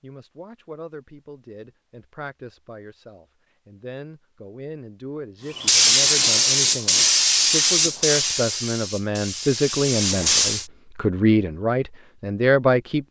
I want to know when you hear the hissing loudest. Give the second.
6 s.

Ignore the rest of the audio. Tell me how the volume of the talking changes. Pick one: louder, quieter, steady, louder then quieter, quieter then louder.
louder.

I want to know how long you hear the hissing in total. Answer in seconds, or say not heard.
5 s.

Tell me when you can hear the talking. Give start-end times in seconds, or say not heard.
0.0-13.0.